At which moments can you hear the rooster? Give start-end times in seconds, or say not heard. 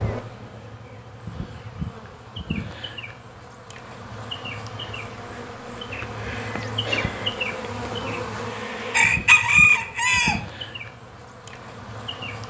8.9-10.4.